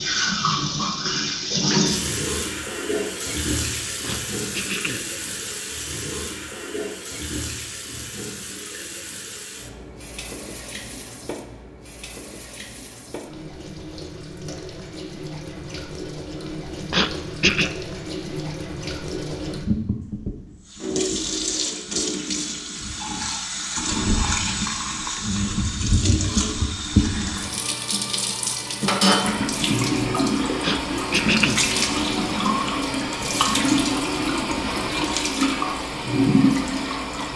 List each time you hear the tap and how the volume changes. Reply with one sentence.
You can hear the tap from 0.0 to 37.3 s, getting quieter then louder.